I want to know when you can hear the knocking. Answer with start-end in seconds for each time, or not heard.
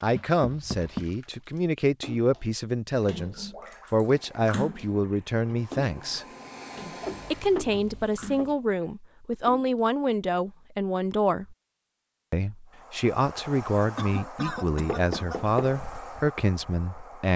0.4-1.1, 7.0-8.6, 14.8-15.8.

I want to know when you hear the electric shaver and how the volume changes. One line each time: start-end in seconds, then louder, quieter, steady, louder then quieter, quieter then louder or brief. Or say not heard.
not heard.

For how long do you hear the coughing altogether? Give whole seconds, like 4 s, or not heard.
2 s.